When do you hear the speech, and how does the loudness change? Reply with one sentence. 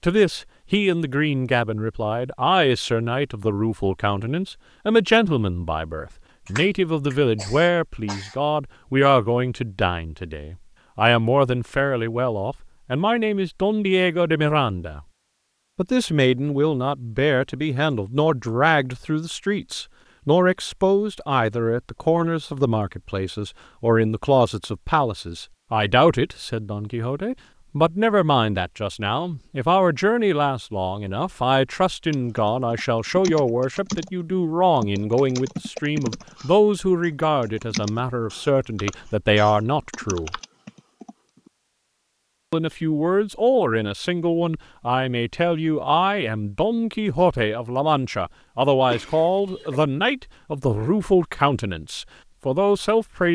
The speech can be heard from 0.0 to 15.0 s, at a steady volume; from 15.8 to 40.4 s, at a steady volume; and from 42.5 to 53.3 s, at a steady volume.